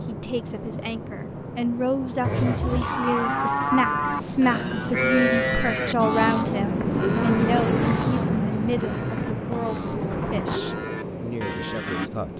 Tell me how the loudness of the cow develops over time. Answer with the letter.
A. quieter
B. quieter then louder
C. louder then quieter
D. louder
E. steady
A.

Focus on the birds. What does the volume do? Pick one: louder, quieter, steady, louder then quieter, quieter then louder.
louder then quieter.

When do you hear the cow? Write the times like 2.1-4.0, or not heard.
2.2-12.1.